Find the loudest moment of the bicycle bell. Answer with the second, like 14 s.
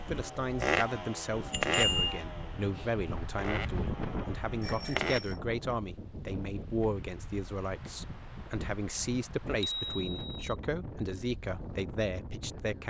2 s.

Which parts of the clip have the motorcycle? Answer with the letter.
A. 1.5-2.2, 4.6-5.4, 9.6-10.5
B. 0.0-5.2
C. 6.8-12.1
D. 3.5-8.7
B.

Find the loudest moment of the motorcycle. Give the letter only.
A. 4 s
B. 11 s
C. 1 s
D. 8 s
C.